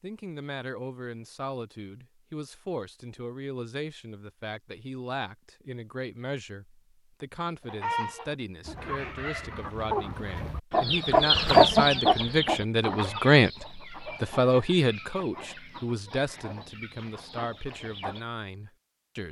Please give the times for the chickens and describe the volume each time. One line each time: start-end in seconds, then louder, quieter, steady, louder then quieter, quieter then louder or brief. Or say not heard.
7.6-18.2 louder then quieter.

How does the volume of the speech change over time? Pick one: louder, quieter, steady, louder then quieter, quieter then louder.
louder then quieter.